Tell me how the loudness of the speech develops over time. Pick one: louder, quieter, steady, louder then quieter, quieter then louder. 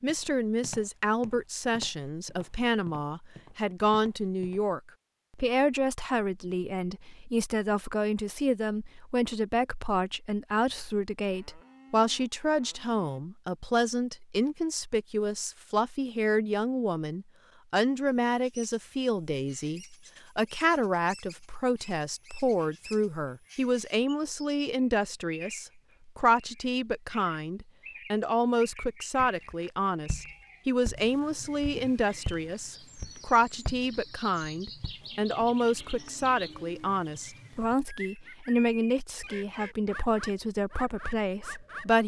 steady.